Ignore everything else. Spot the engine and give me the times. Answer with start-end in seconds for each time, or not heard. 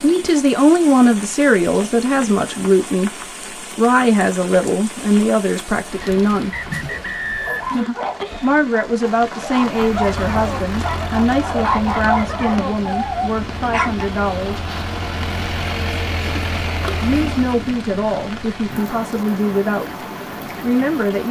9.8-17.6.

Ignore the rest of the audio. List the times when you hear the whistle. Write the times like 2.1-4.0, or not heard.
6.0-7.8.